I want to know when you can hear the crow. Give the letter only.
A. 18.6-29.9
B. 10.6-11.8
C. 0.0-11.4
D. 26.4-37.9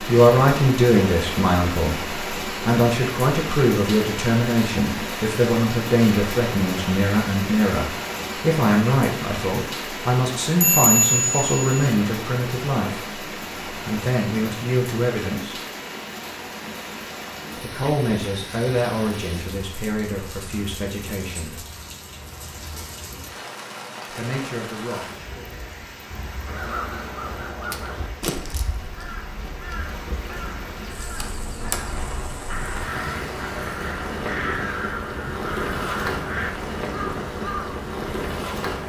D.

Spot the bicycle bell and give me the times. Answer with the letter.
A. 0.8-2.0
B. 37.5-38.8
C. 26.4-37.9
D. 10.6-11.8
D.